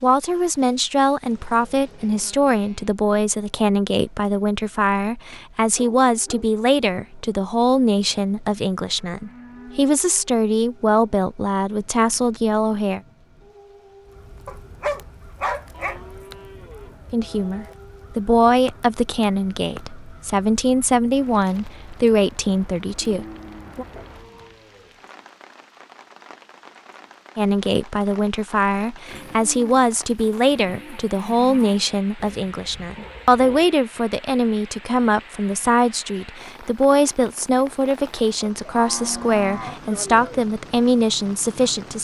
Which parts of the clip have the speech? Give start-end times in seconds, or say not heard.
0.0-13.0, 17.1-23.9, 27.4-41.9.